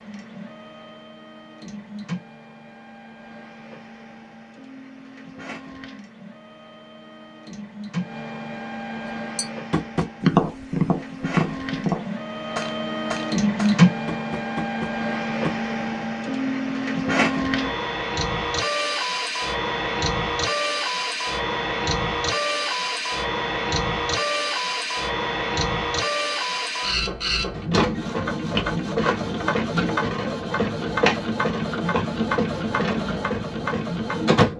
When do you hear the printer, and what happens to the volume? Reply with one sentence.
The printer can be heard from 0.0 to 34.5 s, getting louder.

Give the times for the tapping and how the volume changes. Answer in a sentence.
The tapping can be heard from 9.3 to 15.6 s, getting quieter.